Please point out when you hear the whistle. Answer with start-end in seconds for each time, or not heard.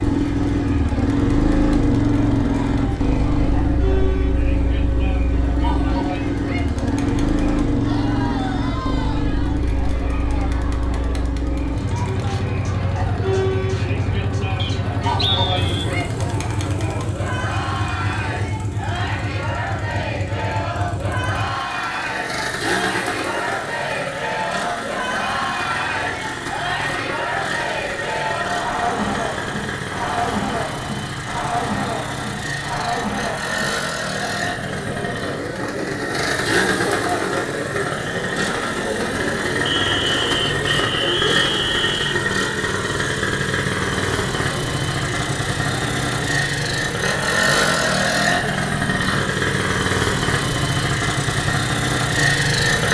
14.6-15.9, 39.6-42.1.